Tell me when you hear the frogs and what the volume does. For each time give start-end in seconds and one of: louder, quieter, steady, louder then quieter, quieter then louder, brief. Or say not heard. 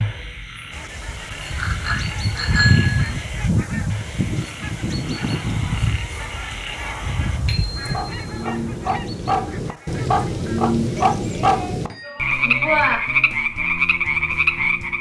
0.0-14.9 louder.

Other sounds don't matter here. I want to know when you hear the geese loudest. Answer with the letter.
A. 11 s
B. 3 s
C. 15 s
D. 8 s
B.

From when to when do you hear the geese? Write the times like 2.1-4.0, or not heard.
0.7-11.2.